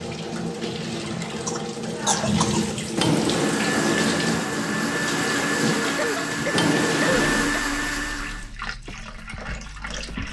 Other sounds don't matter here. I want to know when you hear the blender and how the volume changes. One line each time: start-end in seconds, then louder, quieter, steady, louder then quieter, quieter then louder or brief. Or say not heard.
3.3-8.6 steady.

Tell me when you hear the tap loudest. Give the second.
4 s.